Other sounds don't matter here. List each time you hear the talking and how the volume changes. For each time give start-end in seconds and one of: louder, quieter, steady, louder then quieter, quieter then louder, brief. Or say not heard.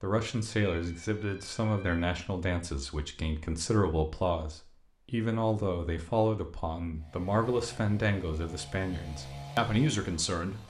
0.0-10.6 steady.